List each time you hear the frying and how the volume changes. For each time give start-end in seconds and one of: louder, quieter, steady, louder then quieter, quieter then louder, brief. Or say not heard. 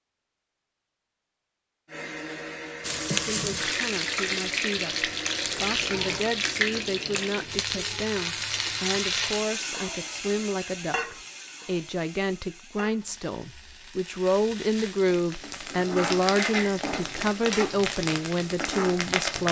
2.8-19.4 quieter then louder.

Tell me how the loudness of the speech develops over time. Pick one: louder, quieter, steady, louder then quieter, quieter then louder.
louder.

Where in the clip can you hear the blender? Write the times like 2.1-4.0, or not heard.
1.9-6.2.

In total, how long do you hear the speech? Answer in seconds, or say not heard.
16 s.